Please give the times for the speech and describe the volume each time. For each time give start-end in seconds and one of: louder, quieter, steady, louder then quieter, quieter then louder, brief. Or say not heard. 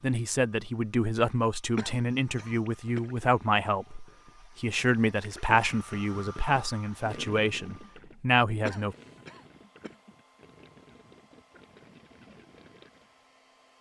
0.0-8.9 steady.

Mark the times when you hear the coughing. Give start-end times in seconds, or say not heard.
1.8-3.0, 8.7-9.9.